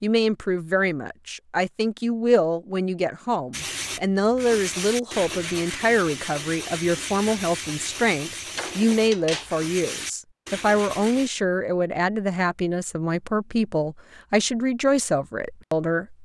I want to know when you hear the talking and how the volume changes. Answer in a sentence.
The talking can be heard from 0.0 to 16.2 s, at a steady volume.